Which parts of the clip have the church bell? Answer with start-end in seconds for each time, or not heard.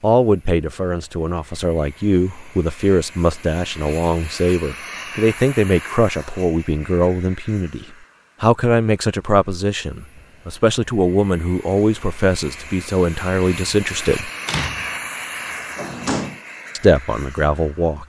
not heard.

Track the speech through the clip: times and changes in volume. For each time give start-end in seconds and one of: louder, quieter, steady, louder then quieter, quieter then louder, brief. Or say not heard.
0.0-14.3 steady
16.8-18.0 brief.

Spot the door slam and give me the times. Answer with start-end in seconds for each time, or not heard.
14.4-16.4.